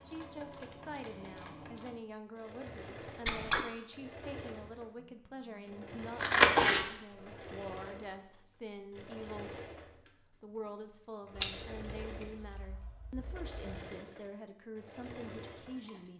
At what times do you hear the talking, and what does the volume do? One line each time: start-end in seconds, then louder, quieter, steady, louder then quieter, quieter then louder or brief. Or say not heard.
0.0-16.1 steady.